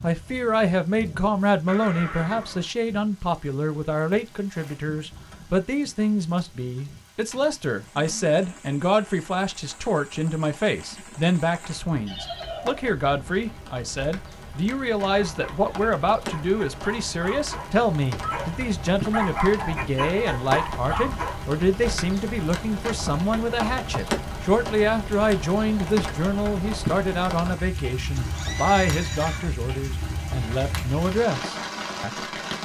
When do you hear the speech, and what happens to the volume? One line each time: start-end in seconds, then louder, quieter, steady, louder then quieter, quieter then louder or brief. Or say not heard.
0.0-32.1 steady.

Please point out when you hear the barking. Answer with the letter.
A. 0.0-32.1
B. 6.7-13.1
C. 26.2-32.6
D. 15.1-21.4
D.